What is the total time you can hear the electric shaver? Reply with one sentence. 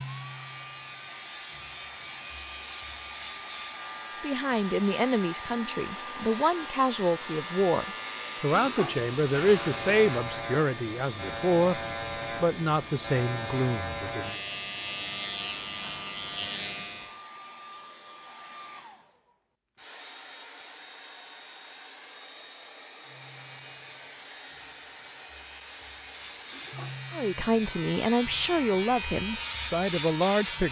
The electric shaver can be heard for 25 seconds in total.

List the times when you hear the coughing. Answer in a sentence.
The coughing can't be heard in this clip.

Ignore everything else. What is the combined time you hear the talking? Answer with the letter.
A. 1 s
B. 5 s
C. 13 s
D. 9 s
C.